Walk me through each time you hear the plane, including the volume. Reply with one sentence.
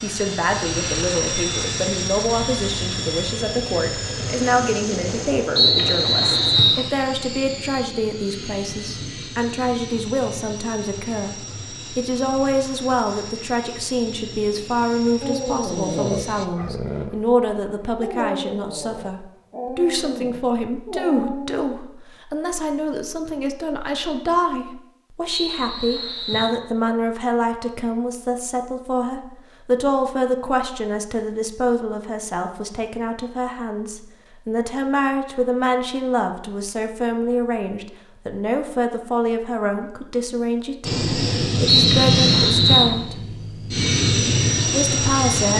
The plane can be heard from 0.0 to 16.5 s, getting quieter; and from 40.8 to 45.5 s, getting quieter then louder.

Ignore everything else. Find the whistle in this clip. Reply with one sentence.
You can hear the whistle from 5.5 to 6.8 s, from 25.3 to 26.6 s and from 41.6 to 43.0 s.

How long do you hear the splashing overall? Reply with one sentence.
You can't hear the splashing here.